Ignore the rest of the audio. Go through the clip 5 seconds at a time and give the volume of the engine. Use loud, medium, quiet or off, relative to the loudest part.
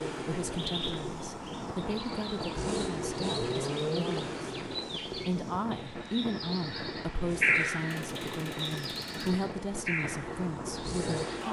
loud, medium, loud.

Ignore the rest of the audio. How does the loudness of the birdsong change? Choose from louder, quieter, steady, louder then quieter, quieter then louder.
louder then quieter.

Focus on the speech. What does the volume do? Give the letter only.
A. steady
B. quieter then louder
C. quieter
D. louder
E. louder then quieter
A.